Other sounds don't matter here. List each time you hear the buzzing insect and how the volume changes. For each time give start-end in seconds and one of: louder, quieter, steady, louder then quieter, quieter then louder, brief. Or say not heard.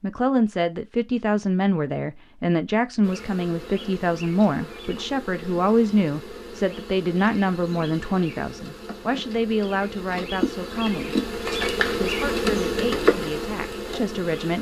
3.0-14.5 louder.